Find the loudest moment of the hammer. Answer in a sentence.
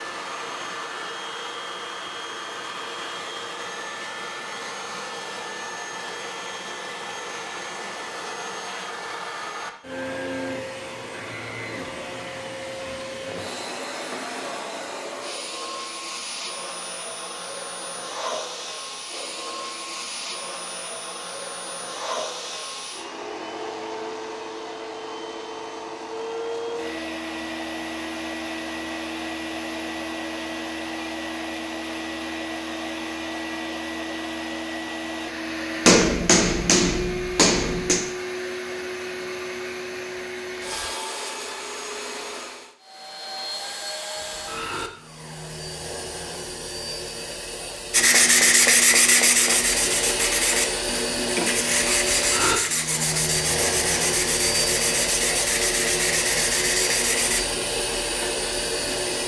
The volume of the hammer peaks at 36 seconds.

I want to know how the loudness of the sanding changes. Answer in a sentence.
The volume of the sanding goes down.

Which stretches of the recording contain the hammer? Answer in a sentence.
You can hear the hammer from 35.9 to 38.0 s.